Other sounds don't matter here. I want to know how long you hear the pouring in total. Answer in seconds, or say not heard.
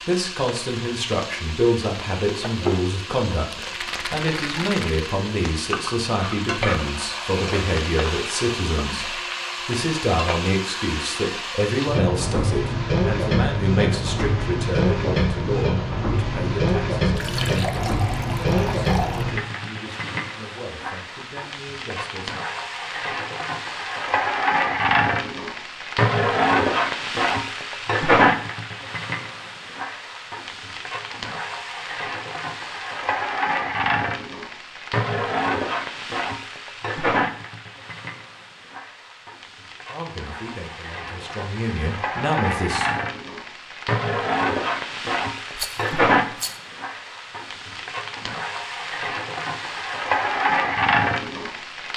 2 s.